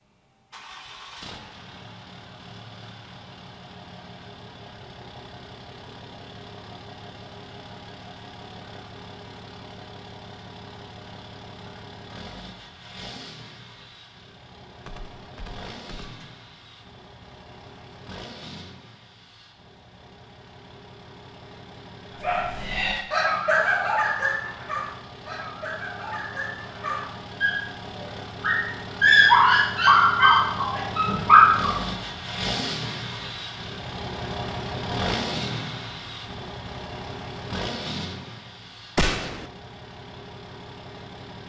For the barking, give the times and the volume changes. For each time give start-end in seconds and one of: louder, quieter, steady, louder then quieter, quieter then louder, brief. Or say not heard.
22.2-31.8 quieter then louder.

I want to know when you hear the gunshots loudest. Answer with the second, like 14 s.
39 s.